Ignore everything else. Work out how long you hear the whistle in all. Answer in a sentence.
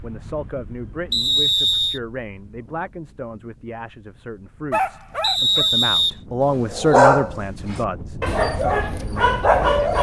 You can hear the whistle for 2 seconds altogether.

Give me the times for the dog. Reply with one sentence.
The dog can be heard from 4.7 to 9.9 s.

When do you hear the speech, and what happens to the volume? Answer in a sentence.
You can hear the speech from 0.0 to 9.8 s, getting louder then quieter.